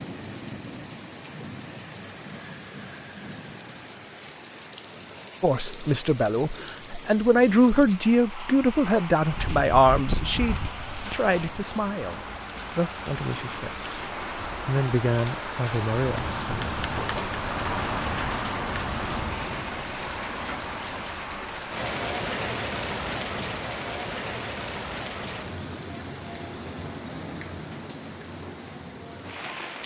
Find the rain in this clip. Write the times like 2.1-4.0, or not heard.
0.0-29.8.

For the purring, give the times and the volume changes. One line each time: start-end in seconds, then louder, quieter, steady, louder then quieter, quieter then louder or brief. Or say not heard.
not heard.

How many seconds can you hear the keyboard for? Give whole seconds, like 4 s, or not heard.
3 s.